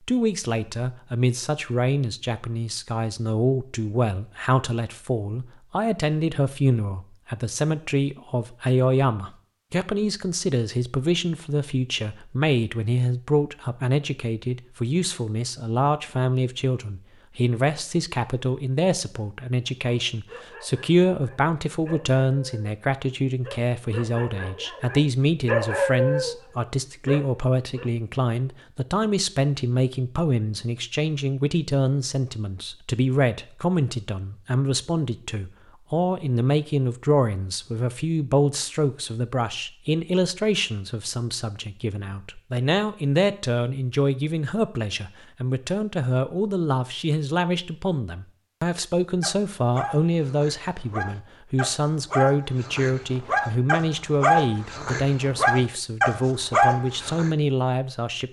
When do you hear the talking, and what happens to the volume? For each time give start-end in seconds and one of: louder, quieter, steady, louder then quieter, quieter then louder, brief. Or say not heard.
0.1-58.2 steady.